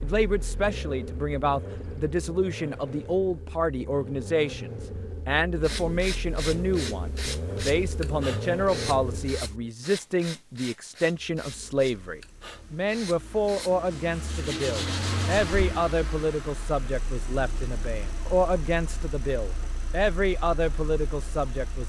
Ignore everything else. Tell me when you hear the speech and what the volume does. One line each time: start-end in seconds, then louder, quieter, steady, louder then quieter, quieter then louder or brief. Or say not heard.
0.0-21.8 steady.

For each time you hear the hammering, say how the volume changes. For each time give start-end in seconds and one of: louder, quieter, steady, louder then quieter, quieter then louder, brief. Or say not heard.
not heard.